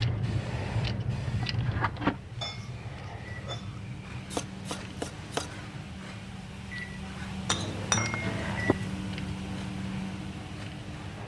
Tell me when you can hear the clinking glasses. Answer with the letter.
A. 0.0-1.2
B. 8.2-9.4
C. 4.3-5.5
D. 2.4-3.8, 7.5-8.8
D.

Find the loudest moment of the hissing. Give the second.
2 s.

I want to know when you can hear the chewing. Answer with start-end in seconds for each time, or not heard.
not heard.